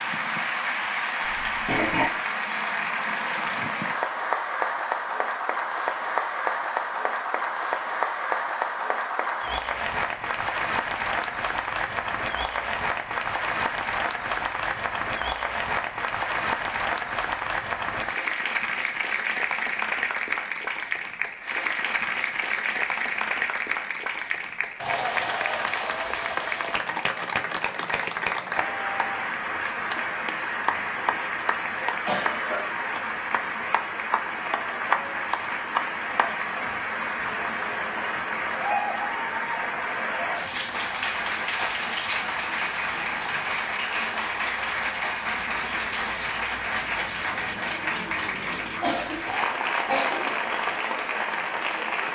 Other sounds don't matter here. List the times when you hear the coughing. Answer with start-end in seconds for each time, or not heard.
1.2-2.1, 31.8-32.6, 48.8-50.5.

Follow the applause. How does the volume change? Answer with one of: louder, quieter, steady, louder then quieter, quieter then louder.
steady.